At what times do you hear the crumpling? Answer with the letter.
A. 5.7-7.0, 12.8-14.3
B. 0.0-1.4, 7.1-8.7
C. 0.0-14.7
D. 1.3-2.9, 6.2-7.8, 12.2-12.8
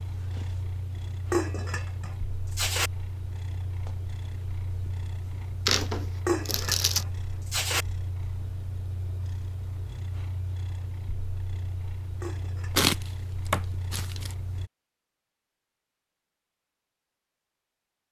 A.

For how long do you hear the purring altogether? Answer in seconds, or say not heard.
15 s.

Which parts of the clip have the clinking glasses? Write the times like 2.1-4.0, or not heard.
1.3-2.9, 6.2-7.8, 12.2-12.8.